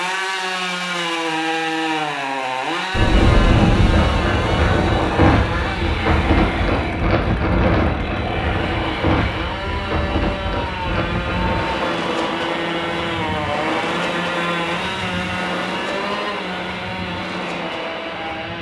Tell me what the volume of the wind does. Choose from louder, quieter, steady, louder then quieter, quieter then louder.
quieter.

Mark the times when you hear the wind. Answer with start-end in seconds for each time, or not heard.
2.9-18.5.